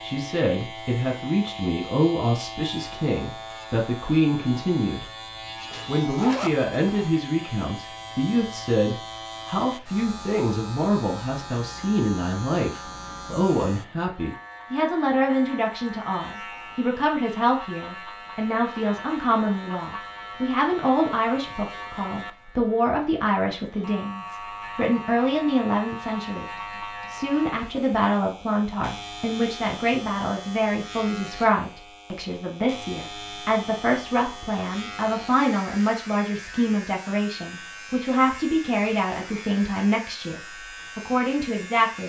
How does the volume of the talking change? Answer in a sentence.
The loudness of the talking stays about the same.